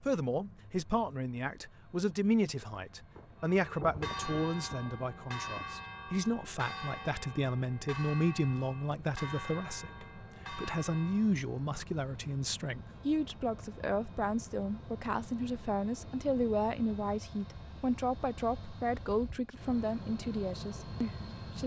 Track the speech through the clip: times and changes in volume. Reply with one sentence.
The speech can be heard from 0.0 to 21.6 s, at a steady volume.